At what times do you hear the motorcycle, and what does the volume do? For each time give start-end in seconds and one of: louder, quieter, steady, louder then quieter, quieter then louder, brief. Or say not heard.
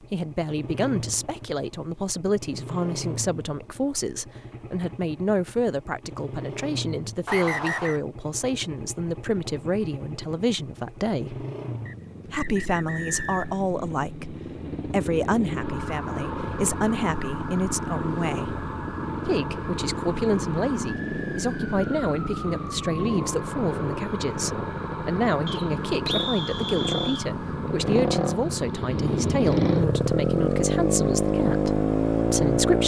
0.0-32.8 louder.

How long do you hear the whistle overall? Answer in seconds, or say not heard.
4 s.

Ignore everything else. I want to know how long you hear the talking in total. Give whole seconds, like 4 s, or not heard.
31 s.